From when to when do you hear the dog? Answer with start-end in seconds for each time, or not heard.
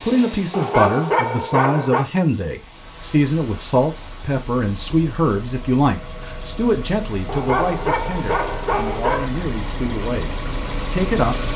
0.5-2.0, 7.2-9.3.